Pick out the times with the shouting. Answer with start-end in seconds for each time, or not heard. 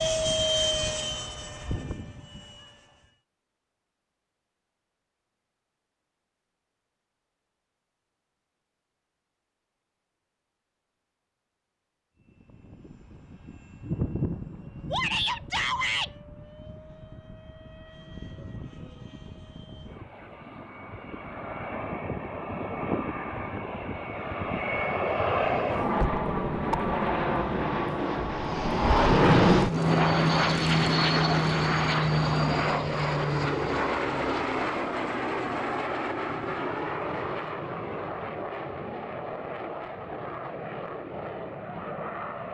14.9-16.1.